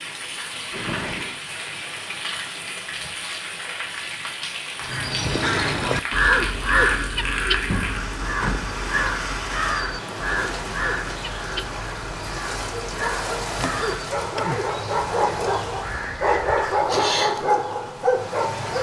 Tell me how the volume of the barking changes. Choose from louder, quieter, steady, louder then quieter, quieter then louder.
louder.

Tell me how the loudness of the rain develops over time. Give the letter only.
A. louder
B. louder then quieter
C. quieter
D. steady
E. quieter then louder
D.